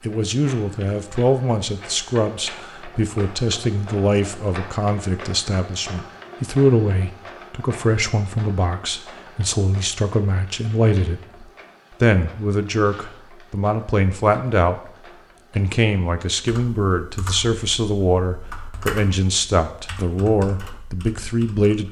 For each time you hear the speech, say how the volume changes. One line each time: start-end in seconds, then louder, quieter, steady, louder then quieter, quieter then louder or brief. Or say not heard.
0.0-14.8 steady
15.6-21.8 steady.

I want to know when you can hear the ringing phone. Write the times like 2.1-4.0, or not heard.
not heard.